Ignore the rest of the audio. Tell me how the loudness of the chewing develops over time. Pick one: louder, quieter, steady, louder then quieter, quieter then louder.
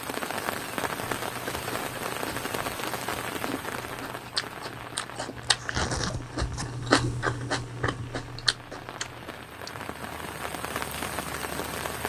louder then quieter.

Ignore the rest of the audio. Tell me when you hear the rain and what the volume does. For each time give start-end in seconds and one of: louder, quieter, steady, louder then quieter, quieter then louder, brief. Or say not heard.
0.0-12.0 quieter then louder.